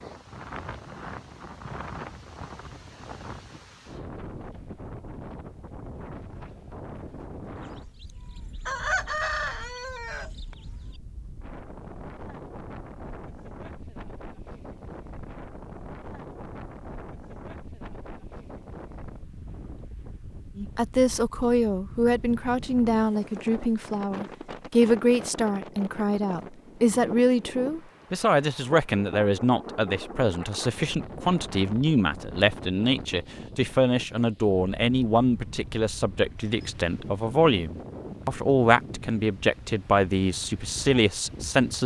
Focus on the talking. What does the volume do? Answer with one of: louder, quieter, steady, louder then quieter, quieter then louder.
steady.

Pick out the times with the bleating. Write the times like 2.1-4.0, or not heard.
not heard.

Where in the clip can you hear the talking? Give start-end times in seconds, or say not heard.
20.6-41.8.